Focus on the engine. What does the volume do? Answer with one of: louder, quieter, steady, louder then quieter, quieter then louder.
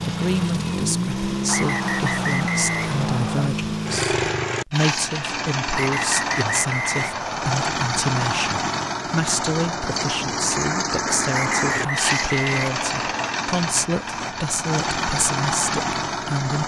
steady.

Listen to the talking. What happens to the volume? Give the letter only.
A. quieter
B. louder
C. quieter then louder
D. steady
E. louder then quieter
D.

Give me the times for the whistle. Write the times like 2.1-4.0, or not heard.
1.4-3.5, 5.7-7.8, 11.3-13.3.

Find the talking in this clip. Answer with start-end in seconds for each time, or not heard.
0.0-16.6.